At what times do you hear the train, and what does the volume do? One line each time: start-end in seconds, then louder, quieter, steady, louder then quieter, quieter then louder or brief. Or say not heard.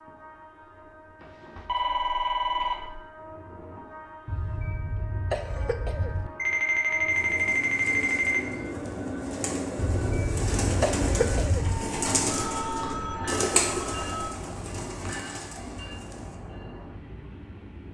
0.0-17.8 louder then quieter.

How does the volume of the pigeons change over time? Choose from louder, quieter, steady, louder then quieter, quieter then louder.
louder then quieter.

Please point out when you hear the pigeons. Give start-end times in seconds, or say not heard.
7.1-16.4.